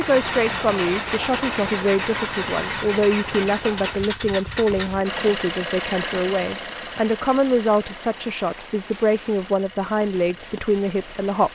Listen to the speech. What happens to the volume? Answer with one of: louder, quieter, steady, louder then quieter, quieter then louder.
steady.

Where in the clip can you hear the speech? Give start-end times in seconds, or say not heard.
0.0-11.5.